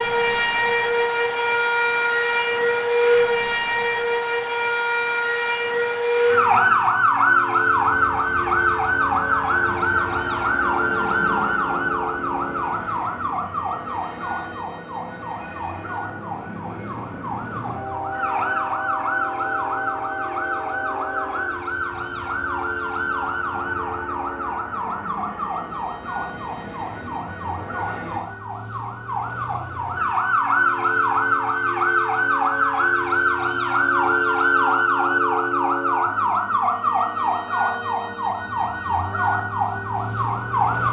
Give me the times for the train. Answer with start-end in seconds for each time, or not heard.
7.7-28.2.